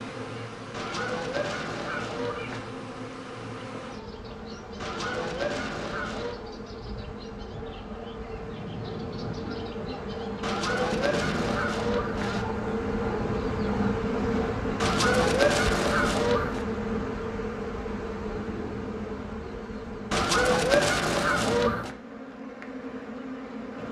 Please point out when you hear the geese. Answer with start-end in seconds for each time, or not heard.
0.7-2.6, 4.8-6.3, 10.4-12.4, 14.8-16.6, 20.1-21.9.